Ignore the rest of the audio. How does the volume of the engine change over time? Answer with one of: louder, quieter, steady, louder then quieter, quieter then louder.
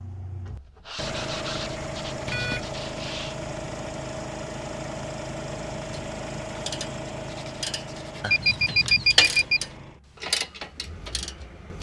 quieter.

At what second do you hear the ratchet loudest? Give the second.
9 s.